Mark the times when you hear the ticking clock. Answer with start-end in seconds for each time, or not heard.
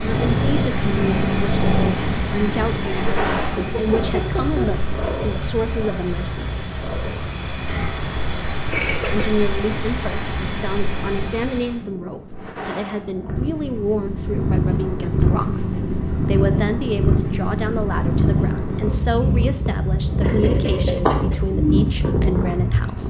not heard.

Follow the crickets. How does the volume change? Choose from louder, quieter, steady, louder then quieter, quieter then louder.
steady.